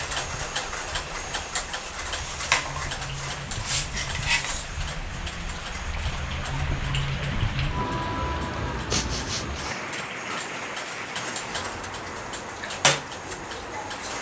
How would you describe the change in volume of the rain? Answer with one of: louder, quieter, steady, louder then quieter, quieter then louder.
louder then quieter.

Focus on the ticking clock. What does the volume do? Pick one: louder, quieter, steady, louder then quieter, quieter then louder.
quieter then louder.